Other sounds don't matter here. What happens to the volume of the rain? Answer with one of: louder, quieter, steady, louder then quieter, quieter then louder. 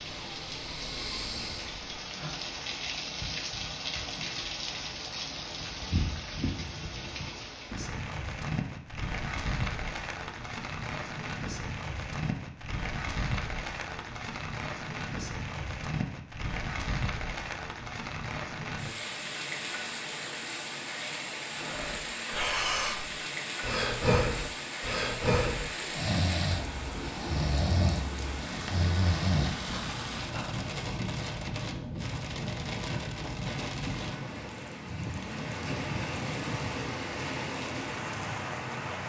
steady.